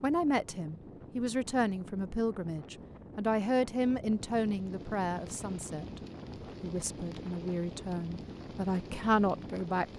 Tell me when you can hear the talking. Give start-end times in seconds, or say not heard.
0.0-6.0, 6.6-9.9.